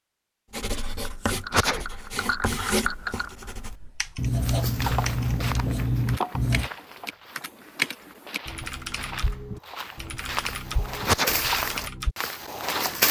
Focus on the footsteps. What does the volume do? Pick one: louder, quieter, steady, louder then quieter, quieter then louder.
quieter then louder.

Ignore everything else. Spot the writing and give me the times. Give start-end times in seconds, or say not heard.
0.5-6.7.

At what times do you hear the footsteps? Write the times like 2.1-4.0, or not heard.
4.4-13.0.